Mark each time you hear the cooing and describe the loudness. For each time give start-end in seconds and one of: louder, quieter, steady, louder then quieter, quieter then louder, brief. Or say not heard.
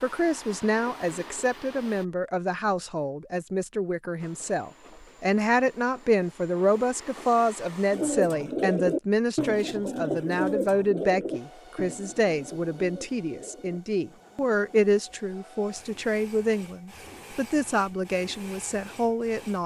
7.9-14.9 quieter.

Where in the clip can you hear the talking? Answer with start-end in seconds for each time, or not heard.
0.0-19.6.